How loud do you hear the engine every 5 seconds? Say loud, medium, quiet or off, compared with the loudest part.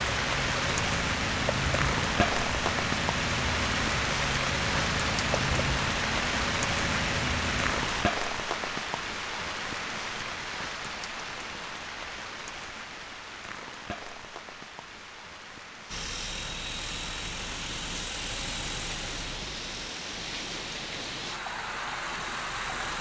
loud, loud, off, loud, medium.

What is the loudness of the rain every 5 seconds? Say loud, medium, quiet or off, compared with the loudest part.
loud, loud, medium, quiet, medium.